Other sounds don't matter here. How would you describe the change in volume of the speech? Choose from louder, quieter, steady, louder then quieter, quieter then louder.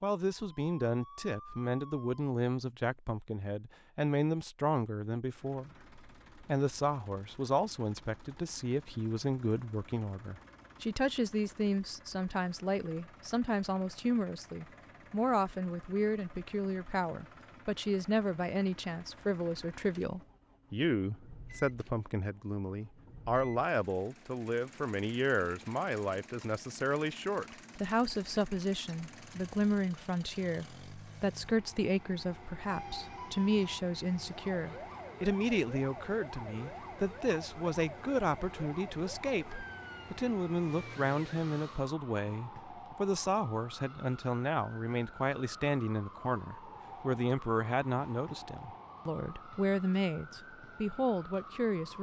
steady.